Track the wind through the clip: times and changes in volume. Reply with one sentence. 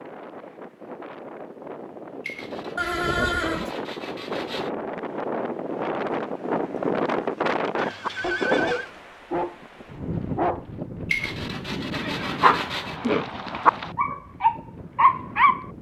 You can hear the wind from 0.0 to 15.7 s, getting louder then quieter.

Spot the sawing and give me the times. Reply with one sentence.
You can hear the sawing from 2.2 to 4.7 s and from 11.1 to 13.0 s.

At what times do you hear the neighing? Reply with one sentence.
The neighing can be heard from 2.8 to 3.7 s, from 7.8 to 8.9 s and from 11.9 to 13.9 s.